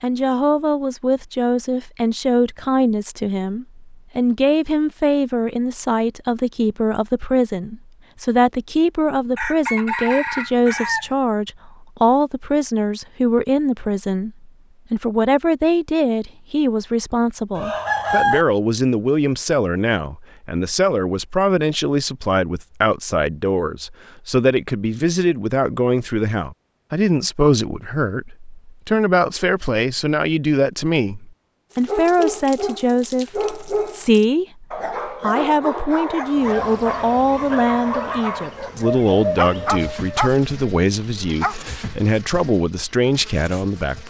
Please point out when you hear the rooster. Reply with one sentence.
The rooster can be heard from 9.3 to 11.1 s, from 17.6 to 18.4 s and from 38.5 to 40.3 s.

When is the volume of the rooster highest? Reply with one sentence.
The volume of the rooster peaks at 18 seconds.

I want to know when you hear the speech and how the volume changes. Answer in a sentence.
The speech can be heard from 0.0 to 44.0 s, at a steady volume.